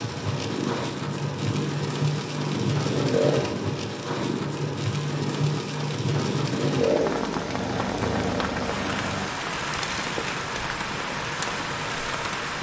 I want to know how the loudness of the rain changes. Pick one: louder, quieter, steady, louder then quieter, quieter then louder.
steady.